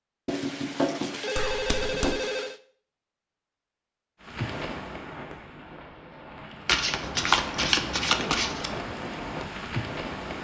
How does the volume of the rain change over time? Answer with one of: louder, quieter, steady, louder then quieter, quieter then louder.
quieter then louder.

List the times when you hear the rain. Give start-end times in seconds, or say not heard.
4.2-10.3.